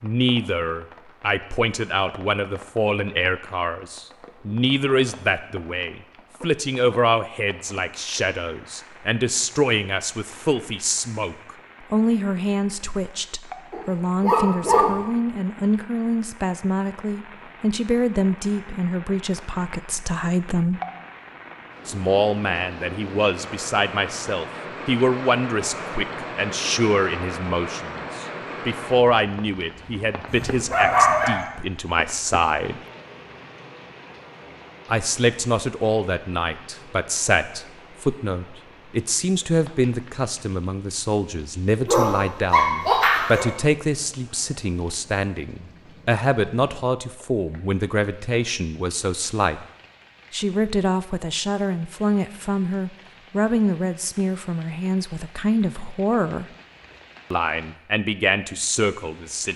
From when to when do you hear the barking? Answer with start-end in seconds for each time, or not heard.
13.7-14.9, 30.2-31.4, 41.9-43.5.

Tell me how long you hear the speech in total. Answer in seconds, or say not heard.
55 s.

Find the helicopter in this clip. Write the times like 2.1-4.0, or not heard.
not heard.